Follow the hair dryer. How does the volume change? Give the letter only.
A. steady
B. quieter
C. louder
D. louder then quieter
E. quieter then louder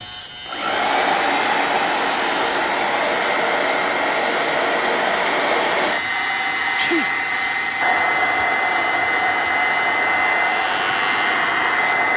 A.